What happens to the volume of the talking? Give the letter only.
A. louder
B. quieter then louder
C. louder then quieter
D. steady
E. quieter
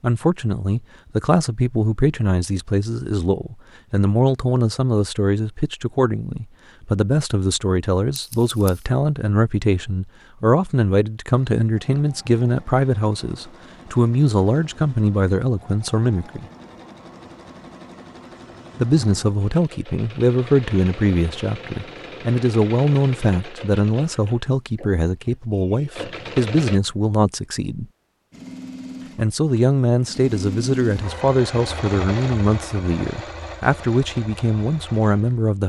D.